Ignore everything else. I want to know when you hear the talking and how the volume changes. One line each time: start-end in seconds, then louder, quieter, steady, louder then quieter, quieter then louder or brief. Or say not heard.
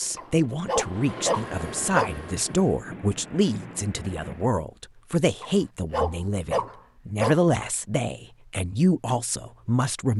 0.0-10.1 steady.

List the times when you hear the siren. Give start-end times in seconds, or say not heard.
not heard.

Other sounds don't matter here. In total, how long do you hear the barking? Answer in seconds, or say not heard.
4 s.